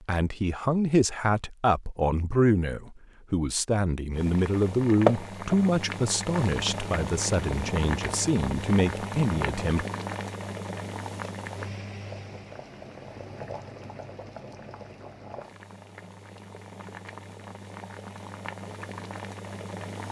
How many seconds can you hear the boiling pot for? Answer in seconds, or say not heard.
16 s.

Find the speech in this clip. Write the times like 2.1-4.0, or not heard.
0.1-9.8.